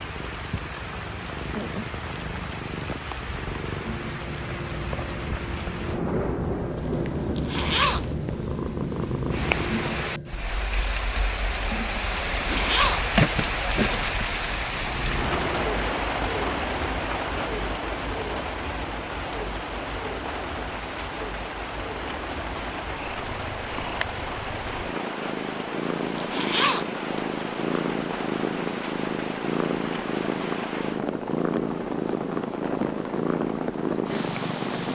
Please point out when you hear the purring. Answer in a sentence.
The purring can be heard from 0.0 to 10.4 s and from 14.8 to 34.9 s.